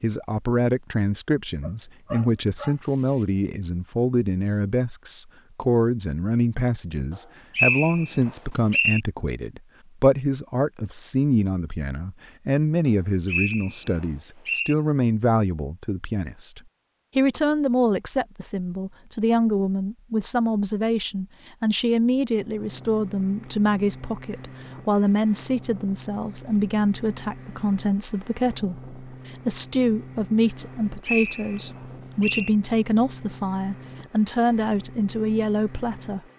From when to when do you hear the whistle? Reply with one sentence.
You can hear the whistle from 7.5 to 9.0 s, from 12.8 to 14.8 s and from 31.0 to 32.5 s.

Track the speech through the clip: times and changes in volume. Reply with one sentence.
The speech can be heard from 0.0 to 36.2 s, at a steady volume.